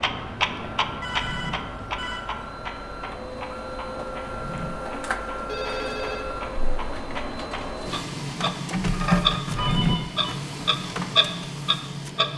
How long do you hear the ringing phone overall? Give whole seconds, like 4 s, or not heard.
3 s.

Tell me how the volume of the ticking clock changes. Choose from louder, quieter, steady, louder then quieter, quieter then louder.
quieter then louder.